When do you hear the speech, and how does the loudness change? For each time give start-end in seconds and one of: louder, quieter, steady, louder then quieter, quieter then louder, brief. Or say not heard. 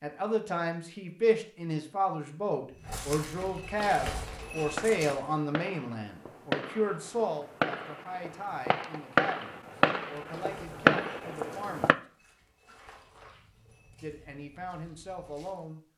0.0-12.0 quieter
14.0-15.8 brief.